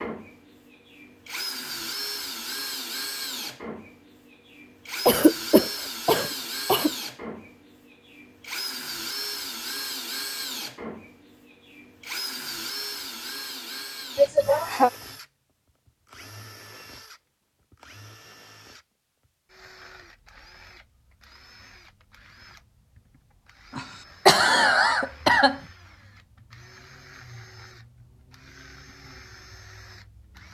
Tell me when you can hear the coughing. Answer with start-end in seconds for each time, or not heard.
5.0-6.9, 14.2-14.9, 23.8-25.6.